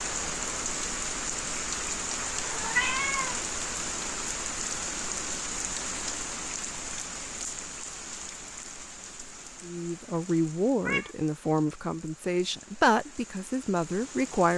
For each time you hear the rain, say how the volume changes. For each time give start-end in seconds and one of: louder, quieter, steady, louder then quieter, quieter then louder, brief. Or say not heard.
0.0-14.5 quieter.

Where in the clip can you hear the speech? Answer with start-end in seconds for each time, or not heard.
9.6-14.5.